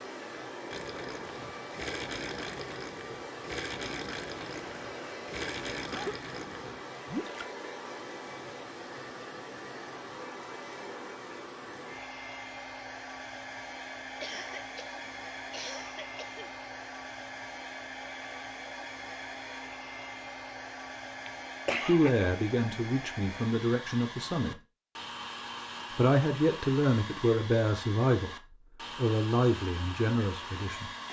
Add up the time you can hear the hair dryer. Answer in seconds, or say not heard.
31 s.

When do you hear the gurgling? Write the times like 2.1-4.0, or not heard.
0.7-7.5.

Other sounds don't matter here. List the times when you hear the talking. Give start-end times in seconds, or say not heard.
21.8-24.6, 25.9-30.9.